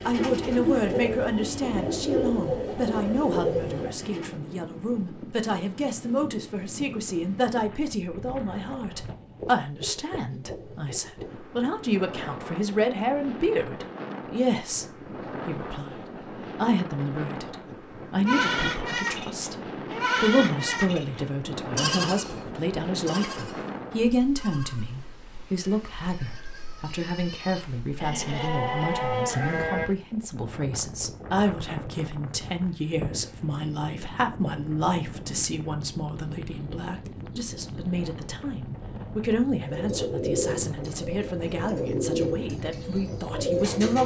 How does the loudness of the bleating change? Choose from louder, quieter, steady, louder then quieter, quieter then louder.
quieter then louder.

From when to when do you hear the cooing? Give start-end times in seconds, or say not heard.
0.0-4.3, 39.5-44.0.